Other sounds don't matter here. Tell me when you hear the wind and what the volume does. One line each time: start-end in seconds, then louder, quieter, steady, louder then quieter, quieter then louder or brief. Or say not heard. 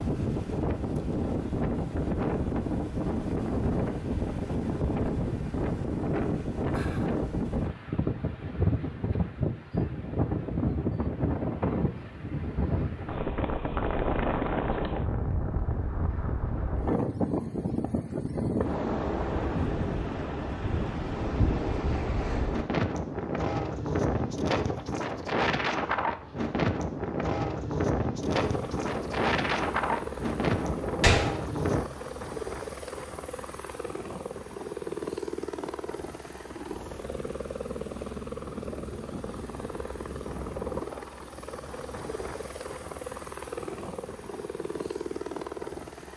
0.0-31.9 steady.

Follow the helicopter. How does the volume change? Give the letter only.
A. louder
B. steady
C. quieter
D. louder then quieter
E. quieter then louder
B.